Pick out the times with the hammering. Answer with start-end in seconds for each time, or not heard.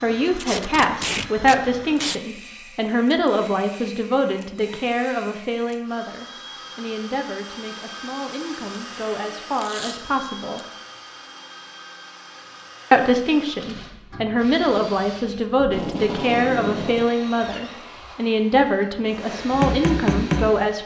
19.1-20.6.